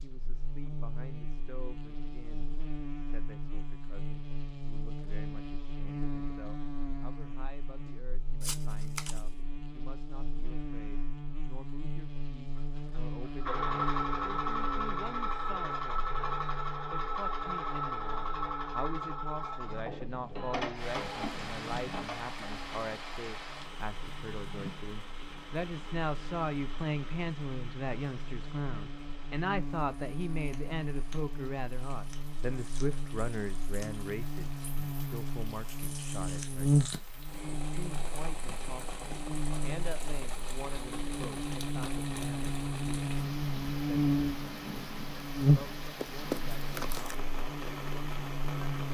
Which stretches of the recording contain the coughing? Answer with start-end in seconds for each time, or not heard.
not heard.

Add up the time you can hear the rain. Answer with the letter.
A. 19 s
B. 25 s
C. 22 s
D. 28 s
D.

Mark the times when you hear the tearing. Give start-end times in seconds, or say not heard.
8.4-9.4, 46.0-47.1.